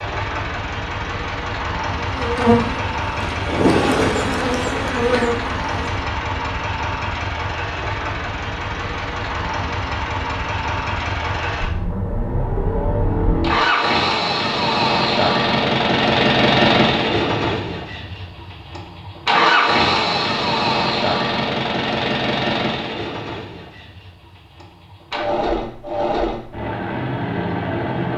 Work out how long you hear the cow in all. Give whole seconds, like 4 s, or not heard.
not heard.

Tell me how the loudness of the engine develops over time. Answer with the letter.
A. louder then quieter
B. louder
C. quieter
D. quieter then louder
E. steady
A.